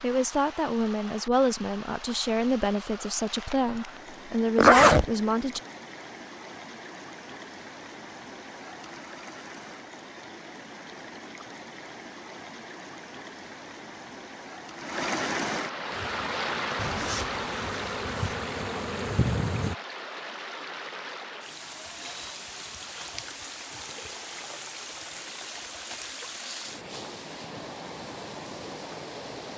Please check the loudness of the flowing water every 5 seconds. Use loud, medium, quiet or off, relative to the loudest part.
medium, medium, medium, loud, medium, medium.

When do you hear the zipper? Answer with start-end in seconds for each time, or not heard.
4.5-5.0, 16.8-18.4.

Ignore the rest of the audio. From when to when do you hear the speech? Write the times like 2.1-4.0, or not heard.
0.0-5.6.